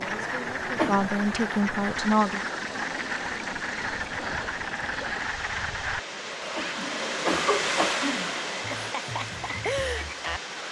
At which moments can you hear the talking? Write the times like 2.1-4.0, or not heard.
0.0-2.4.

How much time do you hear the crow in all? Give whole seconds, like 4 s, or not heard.
not heard.